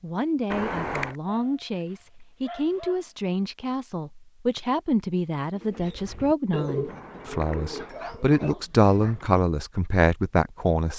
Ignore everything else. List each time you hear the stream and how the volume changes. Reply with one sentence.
The stream can't be heard in this clip.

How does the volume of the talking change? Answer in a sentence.
The volume of the talking goes up.